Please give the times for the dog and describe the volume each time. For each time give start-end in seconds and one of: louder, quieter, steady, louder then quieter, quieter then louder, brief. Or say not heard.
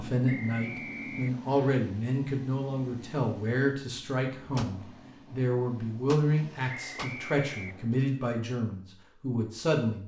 not heard.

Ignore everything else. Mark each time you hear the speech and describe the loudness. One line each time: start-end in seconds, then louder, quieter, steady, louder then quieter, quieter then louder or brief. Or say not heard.
0.0-10.0 steady.